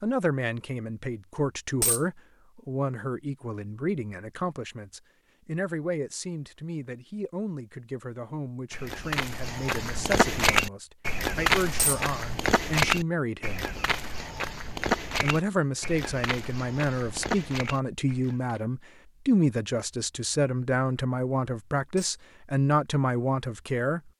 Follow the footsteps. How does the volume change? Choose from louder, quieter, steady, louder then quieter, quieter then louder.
quieter.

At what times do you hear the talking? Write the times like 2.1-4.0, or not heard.
0.0-13.7, 15.2-24.0.